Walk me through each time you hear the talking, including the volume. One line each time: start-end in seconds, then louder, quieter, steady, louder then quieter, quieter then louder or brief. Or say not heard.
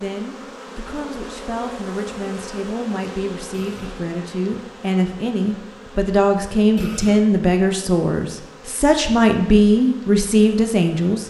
0.0-11.2 louder.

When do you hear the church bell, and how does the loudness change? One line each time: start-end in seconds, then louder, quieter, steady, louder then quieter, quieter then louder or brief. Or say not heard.
not heard.